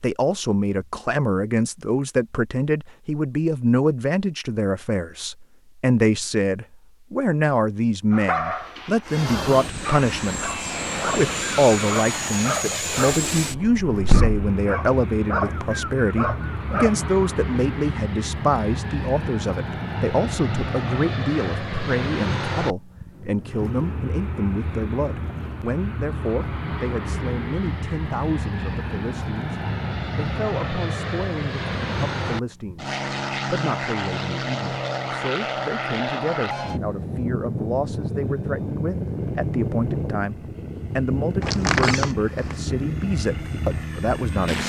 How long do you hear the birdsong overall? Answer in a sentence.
You can't hear the birdsong here.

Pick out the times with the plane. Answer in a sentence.
You can hear the plane from 9.1 to 44.6 s.